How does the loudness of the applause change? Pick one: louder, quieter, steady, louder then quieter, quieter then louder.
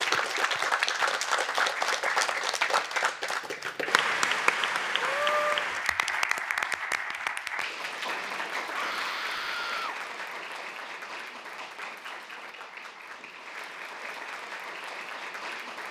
quieter.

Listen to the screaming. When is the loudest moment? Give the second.
5 s.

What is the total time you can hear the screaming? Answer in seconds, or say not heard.
2 s.